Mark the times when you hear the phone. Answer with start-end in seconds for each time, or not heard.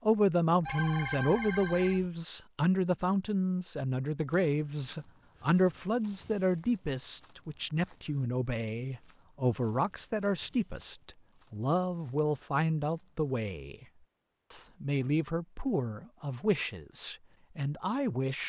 0.6-2.1.